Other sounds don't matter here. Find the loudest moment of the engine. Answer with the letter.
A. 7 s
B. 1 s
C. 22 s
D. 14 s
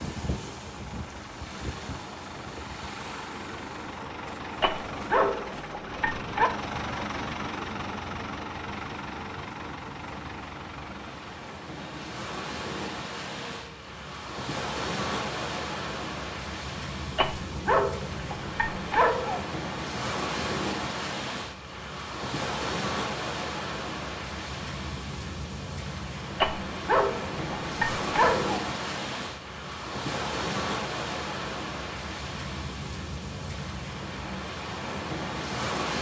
A.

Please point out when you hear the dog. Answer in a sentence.
The dog can be heard from 4.6 to 6.5 s, from 17.1 to 19.4 s and from 26.4 to 28.6 s.